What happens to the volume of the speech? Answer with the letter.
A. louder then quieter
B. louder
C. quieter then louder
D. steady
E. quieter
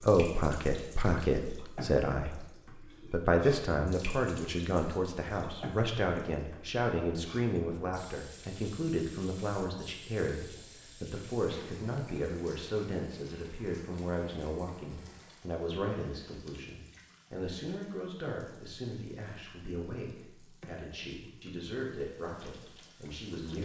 E.